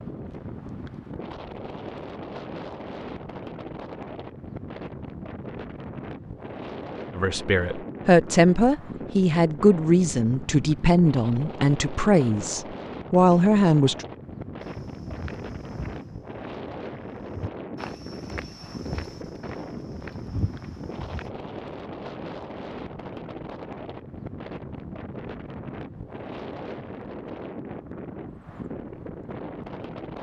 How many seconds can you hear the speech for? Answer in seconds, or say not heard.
7 s.